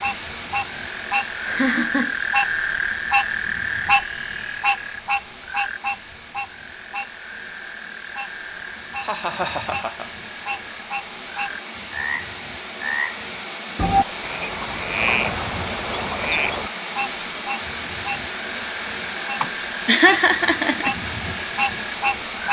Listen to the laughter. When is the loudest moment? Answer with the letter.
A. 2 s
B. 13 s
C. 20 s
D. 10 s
C.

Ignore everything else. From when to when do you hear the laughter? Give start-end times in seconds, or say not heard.
1.4-2.1, 9.0-10.1, 19.4-20.9.